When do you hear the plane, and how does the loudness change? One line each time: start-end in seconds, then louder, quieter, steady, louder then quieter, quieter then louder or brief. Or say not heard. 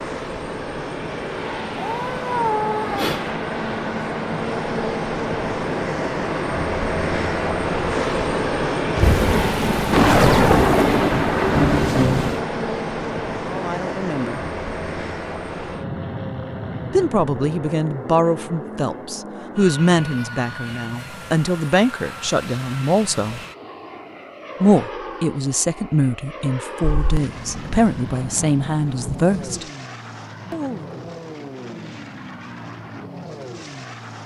0.0-34.2 quieter.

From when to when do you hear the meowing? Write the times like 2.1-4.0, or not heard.
1.8-3.3.